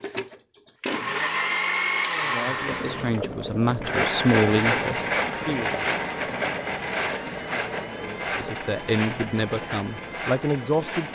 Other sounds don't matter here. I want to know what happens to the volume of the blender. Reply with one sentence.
The volume of the blender goes down.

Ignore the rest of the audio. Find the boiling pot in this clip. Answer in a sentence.
The boiling pot can be heard from 2.5 to 11.1 s.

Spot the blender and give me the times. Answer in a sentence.
The blender can be heard from 0.0 to 11.1 s.